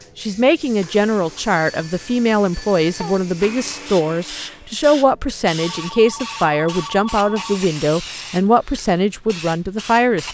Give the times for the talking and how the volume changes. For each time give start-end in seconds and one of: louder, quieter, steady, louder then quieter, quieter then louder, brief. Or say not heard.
0.1-10.2 steady.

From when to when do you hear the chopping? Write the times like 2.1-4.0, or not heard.
not heard.